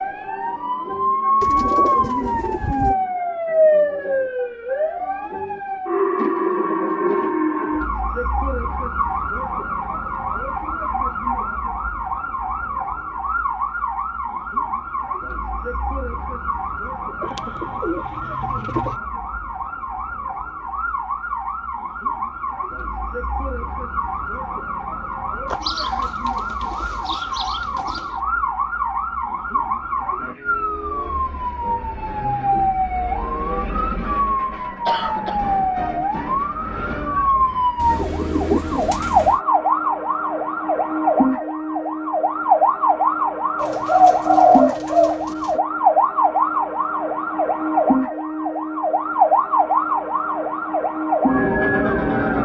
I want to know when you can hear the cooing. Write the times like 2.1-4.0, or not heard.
1.4-3.0, 17.2-19.0, 25.5-28.1, 37.8-39.4, 43.5-45.6.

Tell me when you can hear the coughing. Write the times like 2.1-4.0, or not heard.
34.5-35.4.